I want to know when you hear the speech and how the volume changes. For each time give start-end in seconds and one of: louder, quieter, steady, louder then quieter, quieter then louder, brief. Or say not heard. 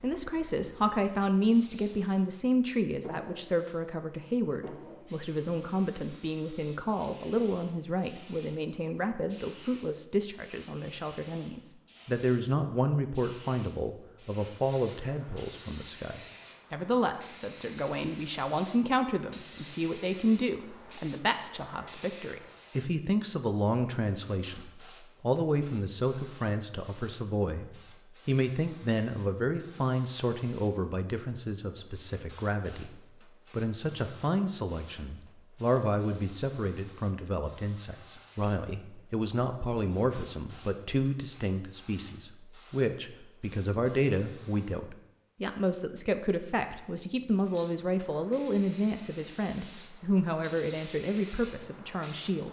0.0-32.9 steady
33.5-52.4 steady.